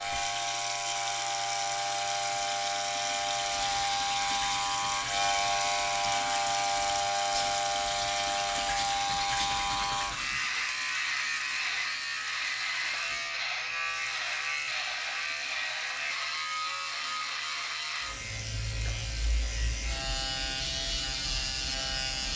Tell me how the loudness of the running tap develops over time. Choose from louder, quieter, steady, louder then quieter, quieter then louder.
quieter.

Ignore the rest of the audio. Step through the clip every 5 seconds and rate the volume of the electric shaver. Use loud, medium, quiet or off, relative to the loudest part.
loud, loud, loud, medium, loud.